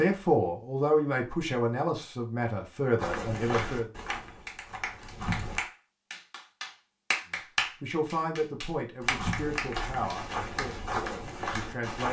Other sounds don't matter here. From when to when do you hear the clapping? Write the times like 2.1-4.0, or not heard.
3.5-11.7.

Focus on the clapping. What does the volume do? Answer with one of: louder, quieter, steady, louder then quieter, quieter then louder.
louder then quieter.